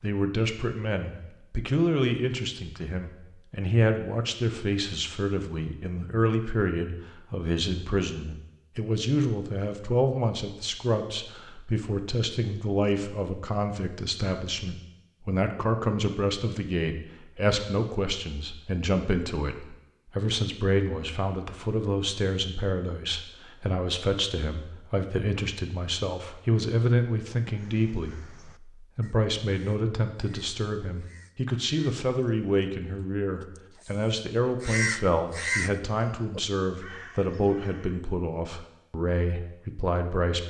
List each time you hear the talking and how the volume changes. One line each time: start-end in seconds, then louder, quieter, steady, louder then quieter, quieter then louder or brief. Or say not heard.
0.0-40.4 steady.